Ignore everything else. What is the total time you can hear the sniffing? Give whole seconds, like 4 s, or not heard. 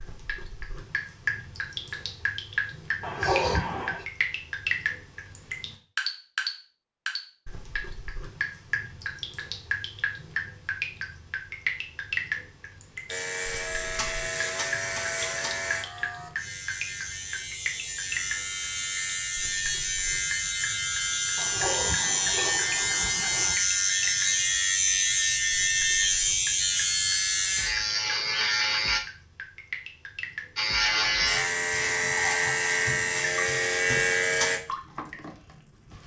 3 s.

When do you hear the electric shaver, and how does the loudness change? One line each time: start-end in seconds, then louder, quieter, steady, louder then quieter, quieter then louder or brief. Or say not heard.
13.1-29.0 louder
30.6-34.6 steady.